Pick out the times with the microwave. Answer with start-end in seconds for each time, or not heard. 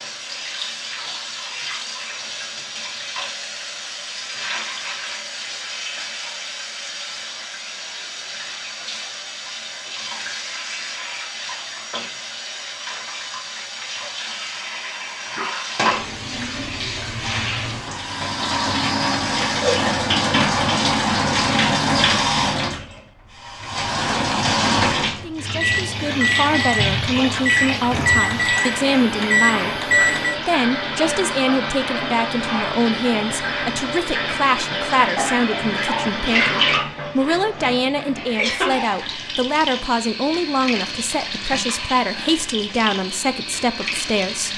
25.6-30.4.